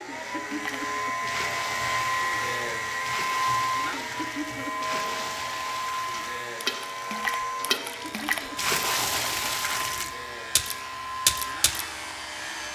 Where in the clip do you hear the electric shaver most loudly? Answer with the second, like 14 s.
2 s.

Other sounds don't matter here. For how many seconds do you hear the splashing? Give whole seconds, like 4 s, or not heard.
11 s.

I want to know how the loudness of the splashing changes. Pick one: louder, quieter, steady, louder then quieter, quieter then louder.
louder.